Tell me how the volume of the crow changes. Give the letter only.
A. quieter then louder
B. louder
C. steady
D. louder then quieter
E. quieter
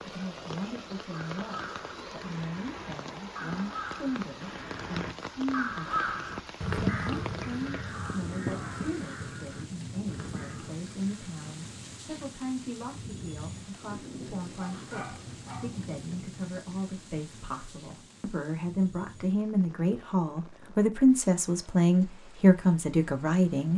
D.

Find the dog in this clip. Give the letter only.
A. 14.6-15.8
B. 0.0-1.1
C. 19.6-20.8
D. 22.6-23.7
A.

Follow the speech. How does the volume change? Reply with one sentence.
The volume of the speech goes up.